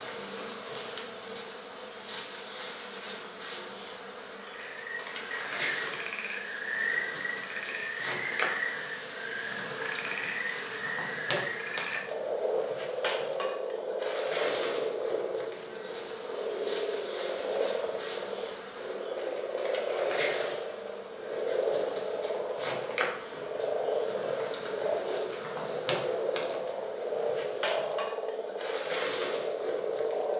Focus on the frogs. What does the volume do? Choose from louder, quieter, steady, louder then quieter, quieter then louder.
steady.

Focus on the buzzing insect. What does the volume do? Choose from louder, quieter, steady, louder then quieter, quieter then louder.
steady.